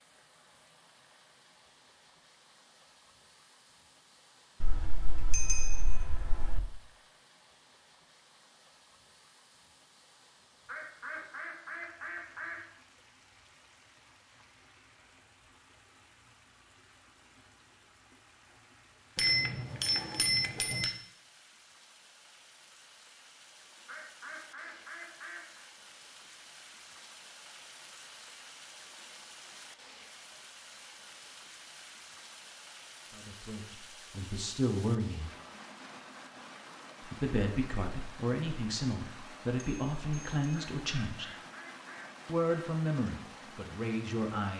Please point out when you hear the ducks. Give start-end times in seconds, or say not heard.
10.7-12.6, 23.9-25.6, 40.5-42.1.